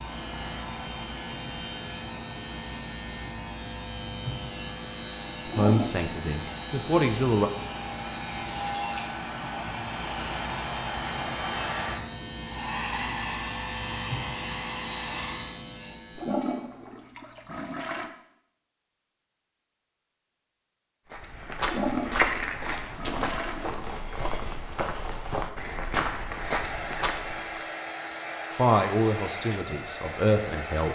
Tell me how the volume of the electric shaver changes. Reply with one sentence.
The loudness of the electric shaver stays about the same.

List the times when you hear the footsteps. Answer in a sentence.
You can hear the footsteps from 21.1 to 27.6 s.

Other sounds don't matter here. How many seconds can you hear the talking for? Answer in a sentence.
The talking can be heard for 4 seconds in total.